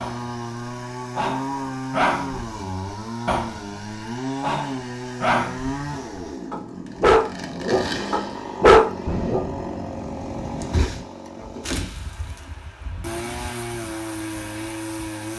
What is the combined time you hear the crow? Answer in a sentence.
You can't hear the crow here.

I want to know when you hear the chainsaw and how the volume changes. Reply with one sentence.
You can hear the chainsaw from 0.0 to 15.3 s, at a steady volume.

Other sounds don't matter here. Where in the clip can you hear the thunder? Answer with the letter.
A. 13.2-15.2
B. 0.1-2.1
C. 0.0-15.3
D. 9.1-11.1
D.